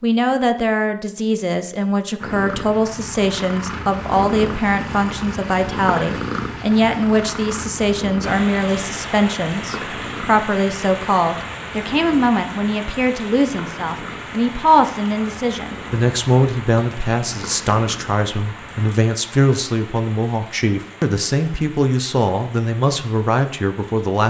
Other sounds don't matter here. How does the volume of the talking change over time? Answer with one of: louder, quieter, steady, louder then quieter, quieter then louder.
steady.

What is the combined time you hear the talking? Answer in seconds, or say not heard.
24 s.